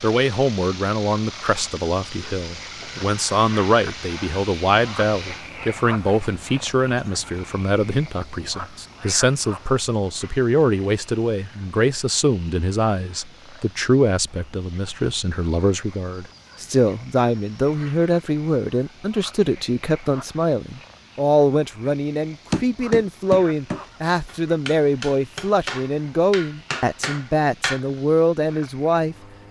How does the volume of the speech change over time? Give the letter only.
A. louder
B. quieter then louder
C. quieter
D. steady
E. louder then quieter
D.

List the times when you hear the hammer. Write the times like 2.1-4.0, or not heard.
22.5-27.8.